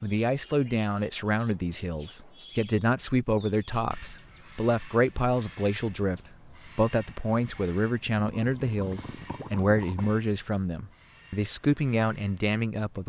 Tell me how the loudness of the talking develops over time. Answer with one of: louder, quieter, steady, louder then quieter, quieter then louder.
steady.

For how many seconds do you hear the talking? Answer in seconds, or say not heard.
13 s.